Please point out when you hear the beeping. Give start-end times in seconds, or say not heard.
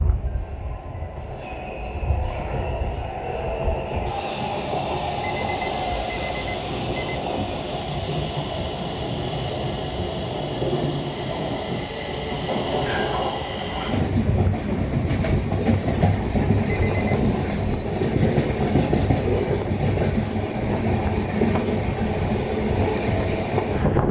5.2-7.2, 16.6-17.1.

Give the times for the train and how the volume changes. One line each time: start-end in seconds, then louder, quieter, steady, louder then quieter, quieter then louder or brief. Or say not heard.
0.0-24.0 louder.